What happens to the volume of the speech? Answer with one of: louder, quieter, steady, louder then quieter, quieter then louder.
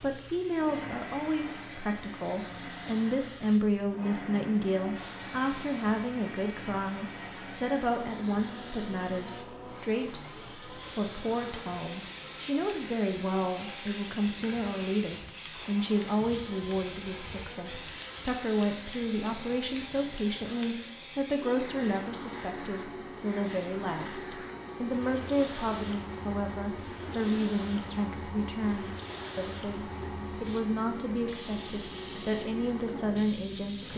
steady.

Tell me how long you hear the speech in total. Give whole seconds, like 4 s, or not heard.
34 s.